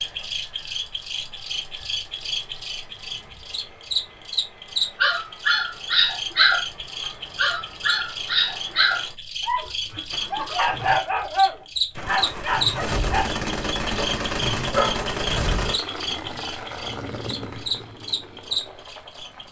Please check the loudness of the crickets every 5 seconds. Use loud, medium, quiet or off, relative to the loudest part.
loud, medium, loud, loud.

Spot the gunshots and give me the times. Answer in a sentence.
You can hear the gunshots from 11.9 to 15.8 s.